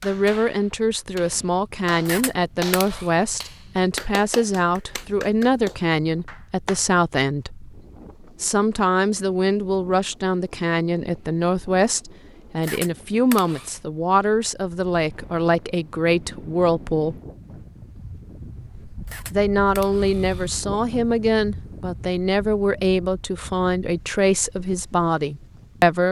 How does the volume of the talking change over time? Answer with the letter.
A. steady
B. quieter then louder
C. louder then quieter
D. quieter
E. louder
A.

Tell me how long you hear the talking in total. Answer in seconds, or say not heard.
24 s.